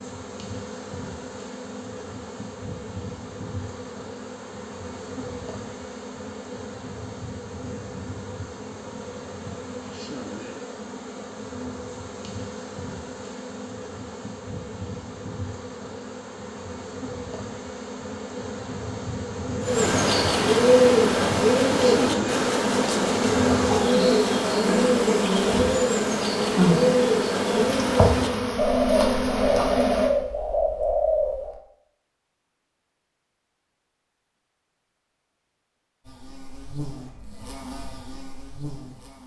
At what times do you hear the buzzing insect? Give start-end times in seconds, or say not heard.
0.0-30.1, 36.0-39.2.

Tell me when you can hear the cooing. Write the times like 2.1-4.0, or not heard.
19.6-31.6.